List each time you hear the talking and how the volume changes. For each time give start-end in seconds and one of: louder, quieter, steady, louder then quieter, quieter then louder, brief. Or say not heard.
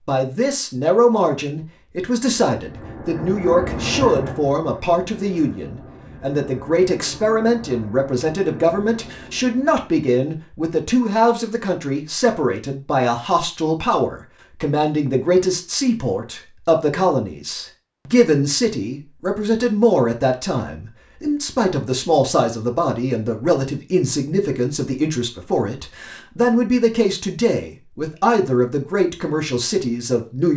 0.1-30.5 steady.